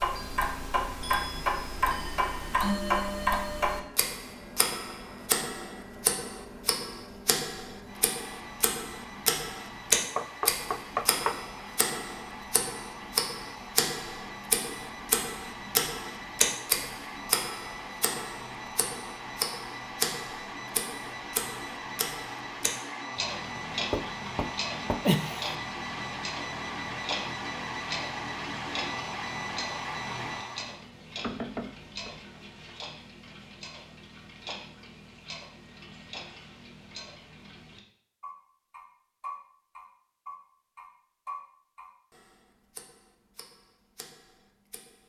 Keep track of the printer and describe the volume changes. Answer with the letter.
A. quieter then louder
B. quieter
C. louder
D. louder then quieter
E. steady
C.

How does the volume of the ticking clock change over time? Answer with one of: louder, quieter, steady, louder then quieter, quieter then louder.
quieter.